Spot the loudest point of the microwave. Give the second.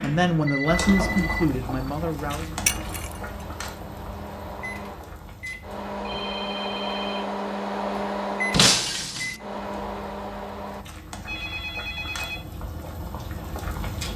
8 s.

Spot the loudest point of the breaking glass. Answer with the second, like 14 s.
9 s.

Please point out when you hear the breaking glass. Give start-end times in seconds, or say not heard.
2.6-3.1, 8.5-9.3.